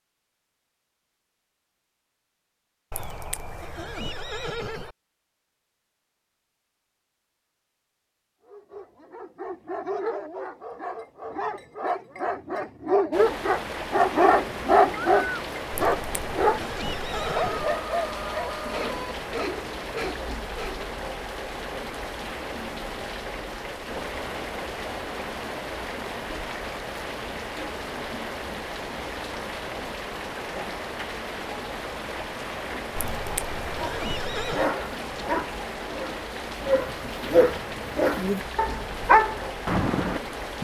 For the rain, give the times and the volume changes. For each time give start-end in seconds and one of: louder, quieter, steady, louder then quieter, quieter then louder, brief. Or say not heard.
13.1-40.5 steady.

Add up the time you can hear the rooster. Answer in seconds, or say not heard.
2 s.